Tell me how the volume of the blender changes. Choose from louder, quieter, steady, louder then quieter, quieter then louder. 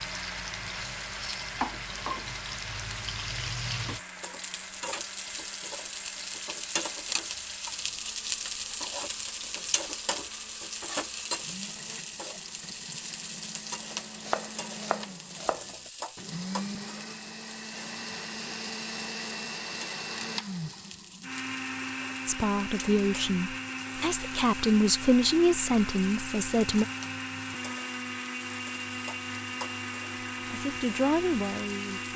quieter then louder.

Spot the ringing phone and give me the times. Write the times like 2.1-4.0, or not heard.
not heard.